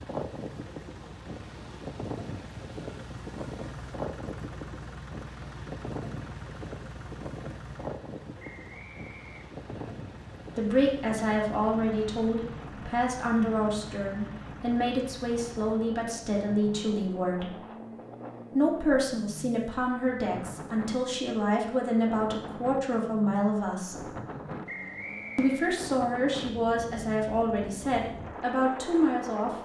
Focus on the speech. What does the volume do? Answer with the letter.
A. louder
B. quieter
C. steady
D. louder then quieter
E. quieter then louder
C.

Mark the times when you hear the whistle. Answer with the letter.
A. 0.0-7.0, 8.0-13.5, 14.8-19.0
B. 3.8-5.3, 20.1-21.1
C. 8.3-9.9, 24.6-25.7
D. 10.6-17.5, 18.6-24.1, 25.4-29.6
C.